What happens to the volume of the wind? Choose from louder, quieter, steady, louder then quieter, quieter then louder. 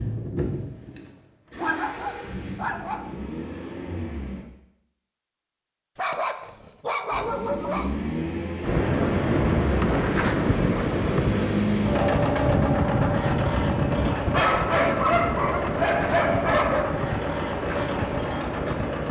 quieter.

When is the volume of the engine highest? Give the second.
12 s.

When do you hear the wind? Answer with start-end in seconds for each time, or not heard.
8.6-19.0.